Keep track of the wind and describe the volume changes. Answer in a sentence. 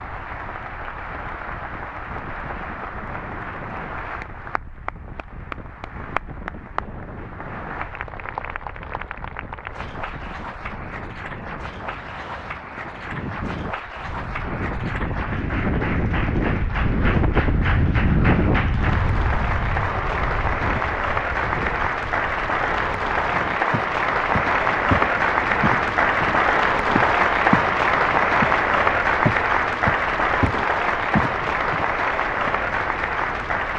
The loudness of the wind goes up, then down.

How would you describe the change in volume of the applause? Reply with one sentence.
The loudness of the applause goes up.